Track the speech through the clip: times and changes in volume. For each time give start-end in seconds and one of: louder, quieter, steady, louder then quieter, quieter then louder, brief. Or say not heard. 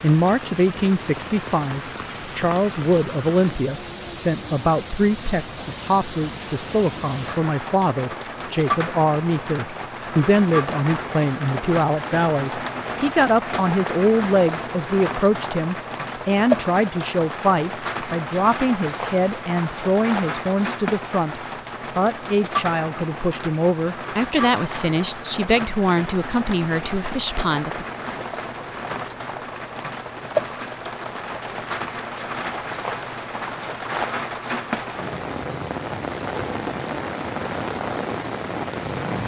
0.0-27.9 steady.